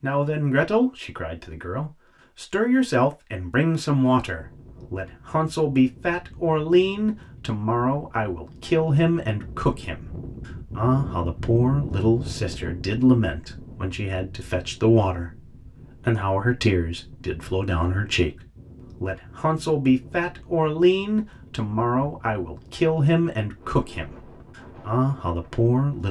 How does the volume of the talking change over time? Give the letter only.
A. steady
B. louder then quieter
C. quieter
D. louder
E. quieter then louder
A.